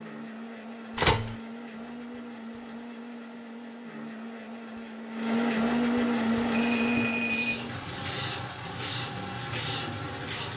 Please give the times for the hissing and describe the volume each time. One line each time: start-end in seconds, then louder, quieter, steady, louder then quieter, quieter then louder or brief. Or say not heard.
6.2-10.5 louder.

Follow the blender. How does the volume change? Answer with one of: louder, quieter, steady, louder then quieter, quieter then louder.
louder then quieter.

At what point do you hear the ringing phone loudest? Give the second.
1 s.